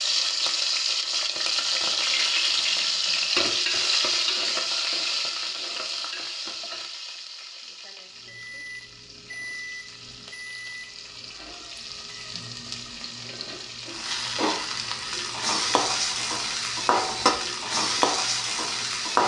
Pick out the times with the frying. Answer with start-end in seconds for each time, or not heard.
0.0-19.2.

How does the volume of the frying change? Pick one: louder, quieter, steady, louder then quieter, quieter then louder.
quieter then louder.